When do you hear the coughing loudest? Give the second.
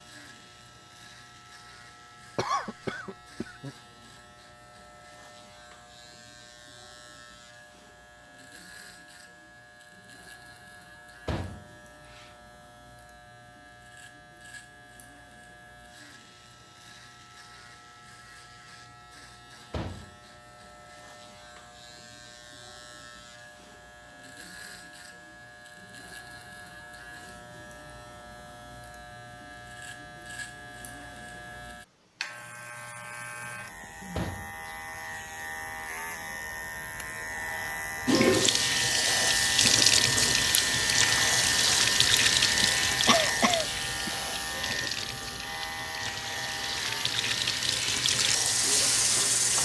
43 s.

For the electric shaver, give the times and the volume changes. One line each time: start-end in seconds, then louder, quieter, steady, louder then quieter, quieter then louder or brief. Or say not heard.
0.0-49.4 louder.